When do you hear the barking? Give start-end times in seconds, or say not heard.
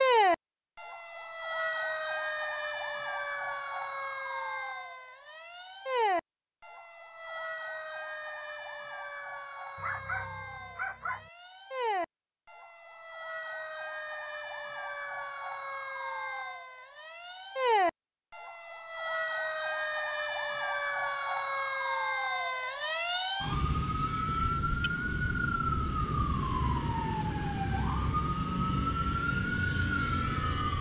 9.8-11.3.